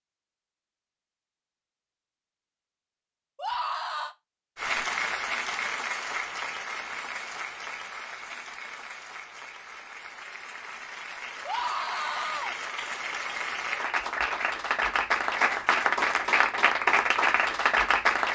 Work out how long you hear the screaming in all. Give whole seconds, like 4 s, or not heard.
2 s.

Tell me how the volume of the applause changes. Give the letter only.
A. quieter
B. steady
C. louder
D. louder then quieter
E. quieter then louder
E.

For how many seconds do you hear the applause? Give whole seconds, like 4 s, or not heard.
14 s.